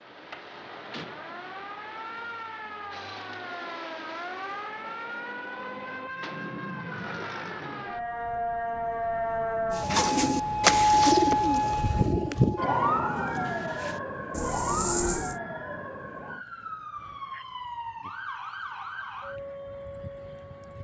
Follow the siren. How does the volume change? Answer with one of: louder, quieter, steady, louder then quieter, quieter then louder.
louder then quieter.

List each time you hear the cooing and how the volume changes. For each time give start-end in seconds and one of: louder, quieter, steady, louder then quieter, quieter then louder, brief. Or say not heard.
9.7-15.3 quieter then louder.